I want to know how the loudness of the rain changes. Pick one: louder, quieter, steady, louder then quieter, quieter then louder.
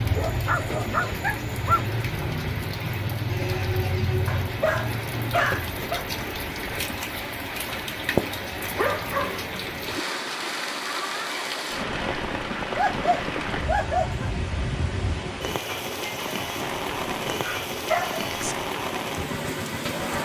steady.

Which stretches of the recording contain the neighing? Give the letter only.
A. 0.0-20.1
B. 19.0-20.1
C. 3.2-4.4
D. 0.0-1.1
C.